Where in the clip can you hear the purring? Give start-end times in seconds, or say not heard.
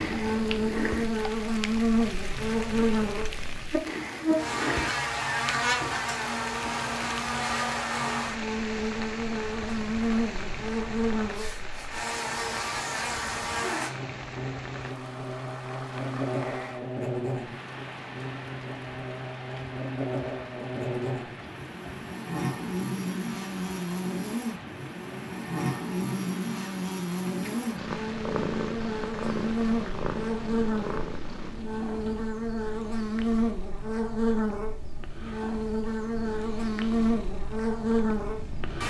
0.0-3.7, 27.8-38.8.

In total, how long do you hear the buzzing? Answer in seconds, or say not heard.
39 s.